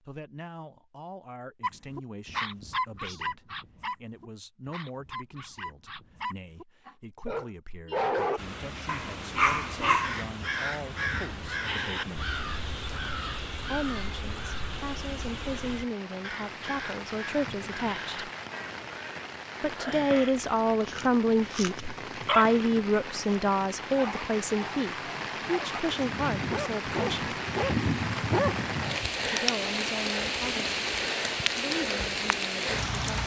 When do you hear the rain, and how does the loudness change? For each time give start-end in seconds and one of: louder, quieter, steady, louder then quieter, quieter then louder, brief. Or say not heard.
8.3-33.2 louder.